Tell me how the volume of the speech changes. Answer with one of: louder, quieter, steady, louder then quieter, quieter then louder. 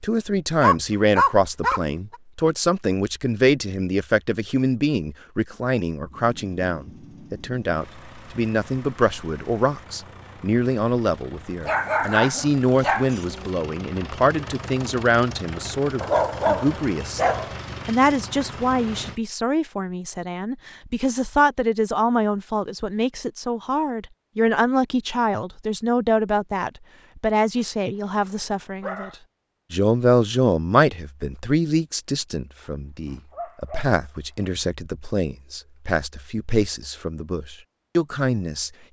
steady.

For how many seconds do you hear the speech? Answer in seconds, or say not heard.
38 s.